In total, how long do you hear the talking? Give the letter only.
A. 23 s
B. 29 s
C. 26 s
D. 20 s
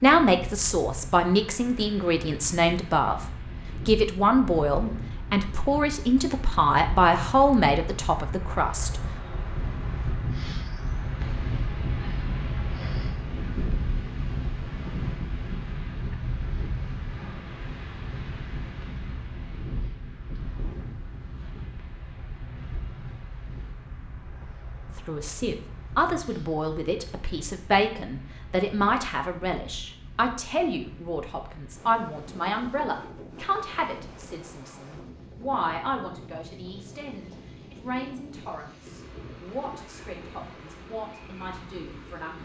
C.